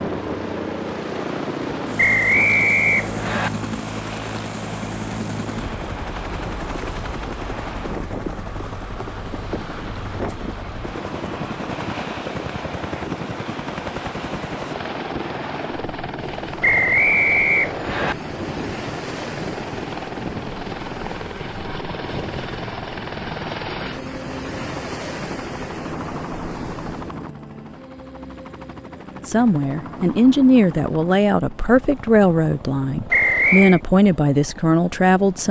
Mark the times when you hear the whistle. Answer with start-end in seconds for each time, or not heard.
1.9-3.5, 16.6-18.1, 33.1-33.8.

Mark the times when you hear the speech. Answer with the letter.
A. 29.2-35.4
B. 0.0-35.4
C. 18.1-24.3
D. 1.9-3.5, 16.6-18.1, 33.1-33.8
A.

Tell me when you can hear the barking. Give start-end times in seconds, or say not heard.
not heard.